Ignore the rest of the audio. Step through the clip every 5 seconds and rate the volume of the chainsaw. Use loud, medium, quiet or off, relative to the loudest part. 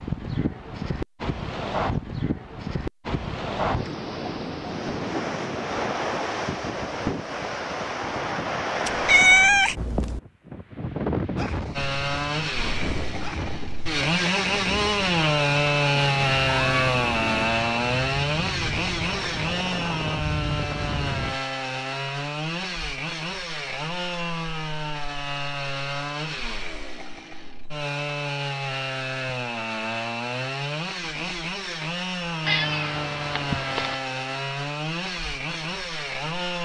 off, off, loud, loud, medium, medium, medium, medium.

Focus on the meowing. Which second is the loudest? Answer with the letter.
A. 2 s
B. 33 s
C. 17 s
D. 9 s
D.